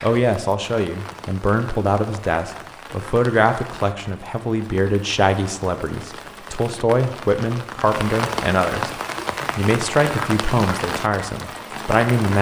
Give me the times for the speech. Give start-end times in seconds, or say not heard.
0.0-8.9, 9.6-12.3.